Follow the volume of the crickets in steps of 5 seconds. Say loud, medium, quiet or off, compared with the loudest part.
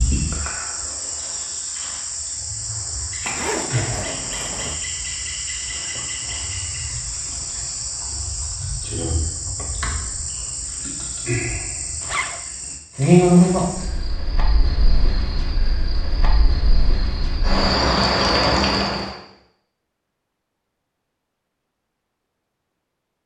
medium, medium, loud, loud, off.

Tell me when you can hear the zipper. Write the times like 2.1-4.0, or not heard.
3.2-4.8, 12.0-12.4.